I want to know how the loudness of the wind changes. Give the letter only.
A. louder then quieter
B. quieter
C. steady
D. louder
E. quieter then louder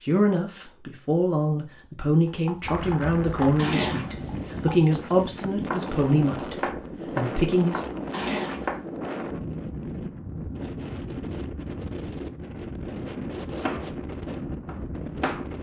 C.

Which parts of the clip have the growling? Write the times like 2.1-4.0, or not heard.
3.5-4.8, 8.1-8.8.